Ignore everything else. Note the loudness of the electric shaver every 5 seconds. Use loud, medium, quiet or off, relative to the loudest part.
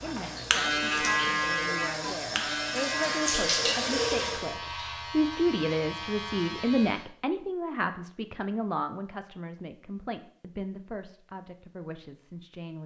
loud, medium, off.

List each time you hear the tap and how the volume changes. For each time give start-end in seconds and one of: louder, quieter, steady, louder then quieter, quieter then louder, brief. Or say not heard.
0.0-4.5 louder.